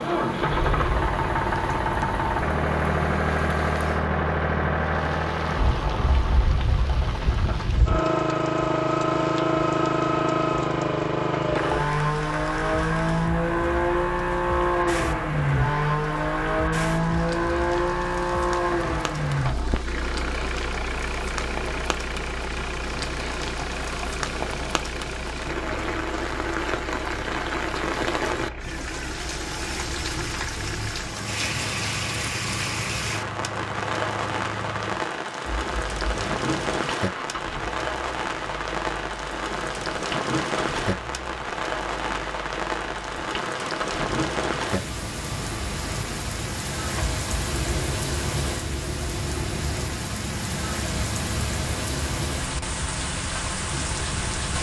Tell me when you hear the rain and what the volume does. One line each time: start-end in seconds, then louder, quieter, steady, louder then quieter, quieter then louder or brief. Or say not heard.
0.0-54.5 louder.